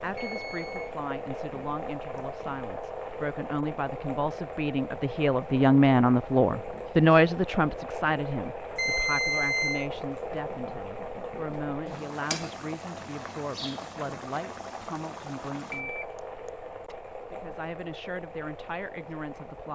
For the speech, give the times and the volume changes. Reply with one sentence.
The speech can be heard from 0.0 to 15.9 s, getting louder then quieter; and briefly from 17.3 to 19.7 s.